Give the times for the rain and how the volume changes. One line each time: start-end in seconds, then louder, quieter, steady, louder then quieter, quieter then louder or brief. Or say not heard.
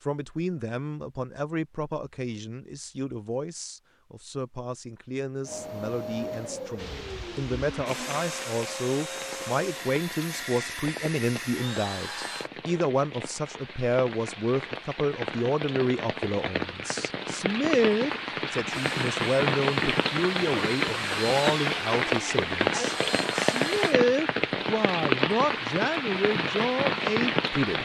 6.8-27.7 louder.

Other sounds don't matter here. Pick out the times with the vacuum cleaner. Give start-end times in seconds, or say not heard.
5.4-12.5, 18.6-23.9.